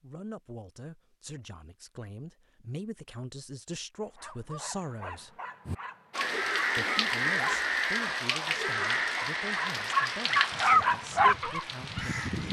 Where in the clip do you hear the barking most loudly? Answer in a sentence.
The loudest moment of the barking is at 11 seconds.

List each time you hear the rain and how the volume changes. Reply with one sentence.
You can hear the rain from 6.1 to 12.4 s, getting quieter.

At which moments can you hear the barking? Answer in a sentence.
The barking can be heard from 4.0 to 12.1 s.